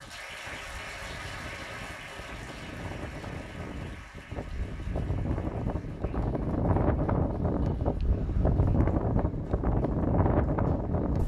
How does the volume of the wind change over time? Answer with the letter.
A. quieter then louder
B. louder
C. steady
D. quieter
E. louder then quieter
B.